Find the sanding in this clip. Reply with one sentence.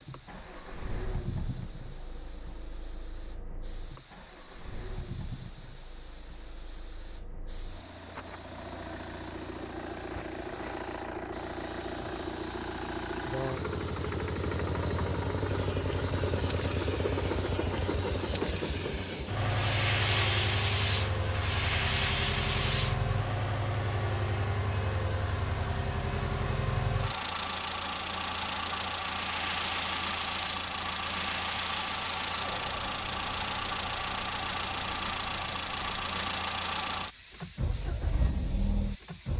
The sanding can't be heard in this clip.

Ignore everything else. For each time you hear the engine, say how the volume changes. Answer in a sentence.
You can hear the engine from 0.0 to 39.3 s, getting louder.